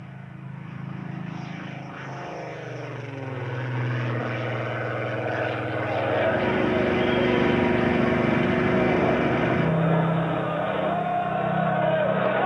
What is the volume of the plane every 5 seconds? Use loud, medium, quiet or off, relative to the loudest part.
medium, loud, medium.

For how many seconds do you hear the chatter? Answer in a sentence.
The chatter can be heard for 7 seconds in total.